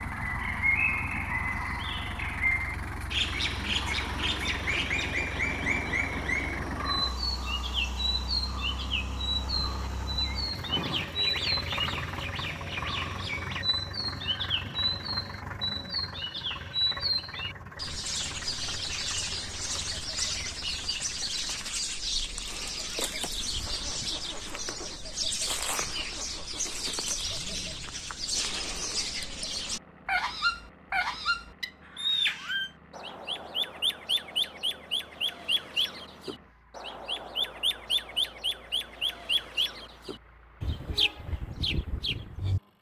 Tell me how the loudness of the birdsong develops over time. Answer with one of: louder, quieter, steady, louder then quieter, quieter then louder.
steady.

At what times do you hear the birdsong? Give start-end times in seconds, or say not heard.
0.1-42.6.